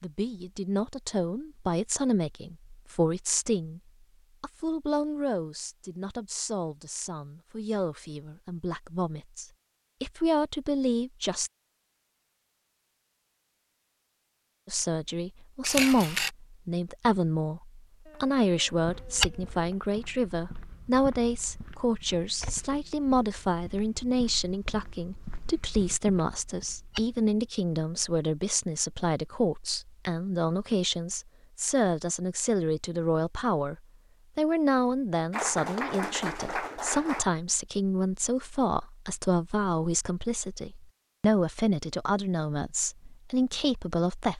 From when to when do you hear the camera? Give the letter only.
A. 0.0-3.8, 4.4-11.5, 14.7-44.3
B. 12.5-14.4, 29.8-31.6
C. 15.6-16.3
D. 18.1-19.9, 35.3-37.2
C.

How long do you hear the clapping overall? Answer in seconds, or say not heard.
4 s.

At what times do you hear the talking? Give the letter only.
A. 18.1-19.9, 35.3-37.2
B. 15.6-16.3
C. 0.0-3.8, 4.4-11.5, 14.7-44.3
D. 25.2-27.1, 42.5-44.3
C.